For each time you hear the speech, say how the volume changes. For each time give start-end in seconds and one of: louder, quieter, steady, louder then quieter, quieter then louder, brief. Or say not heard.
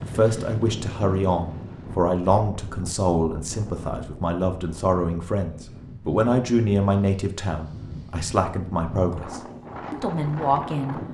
0.0-11.0 steady.